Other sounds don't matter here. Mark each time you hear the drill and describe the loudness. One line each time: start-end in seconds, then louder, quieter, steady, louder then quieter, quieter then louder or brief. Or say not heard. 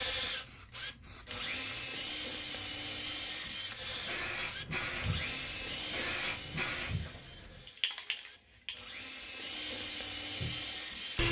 0.0-11.2 quieter then louder.